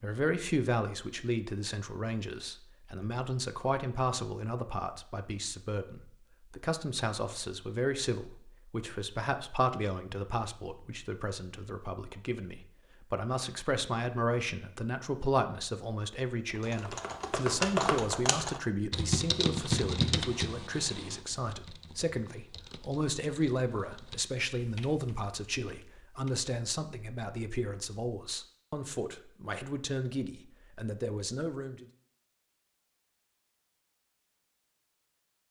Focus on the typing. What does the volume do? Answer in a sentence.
The loudness of the typing goes down.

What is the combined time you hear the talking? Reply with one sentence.
You can hear the talking for 32 seconds altogether.